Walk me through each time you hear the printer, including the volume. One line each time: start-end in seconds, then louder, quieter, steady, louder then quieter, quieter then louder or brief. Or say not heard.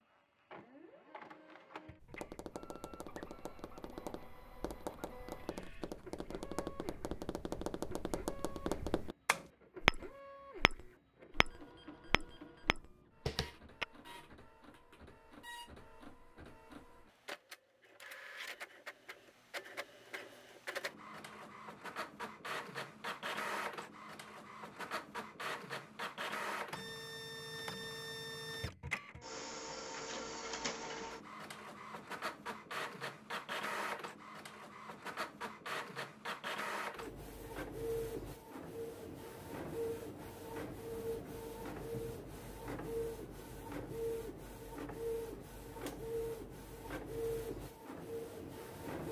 0.0-49.0 louder.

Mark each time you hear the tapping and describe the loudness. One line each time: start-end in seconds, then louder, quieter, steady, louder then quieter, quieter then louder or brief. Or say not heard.
2.0-13.8 louder then quieter.